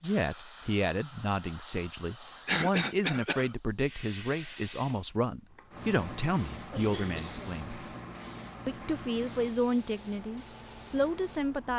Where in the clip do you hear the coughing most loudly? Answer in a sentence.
The volume of the coughing peaks at 3 seconds.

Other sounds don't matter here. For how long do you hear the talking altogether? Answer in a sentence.
You can hear the talking for 11 seconds altogether.